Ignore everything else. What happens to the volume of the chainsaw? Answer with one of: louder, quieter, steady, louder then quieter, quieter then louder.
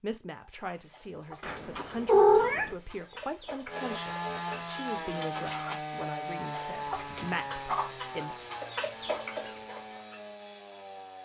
quieter.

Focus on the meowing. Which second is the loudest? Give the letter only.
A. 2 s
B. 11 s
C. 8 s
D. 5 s
A.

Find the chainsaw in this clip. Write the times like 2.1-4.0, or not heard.
3.6-11.2.